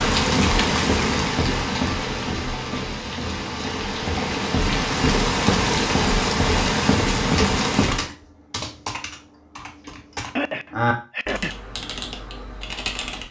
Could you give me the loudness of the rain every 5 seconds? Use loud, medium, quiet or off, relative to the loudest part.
loud, loud, off.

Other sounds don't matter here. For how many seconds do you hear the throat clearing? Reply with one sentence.
You can hear the throat clearing for 2 seconds altogether.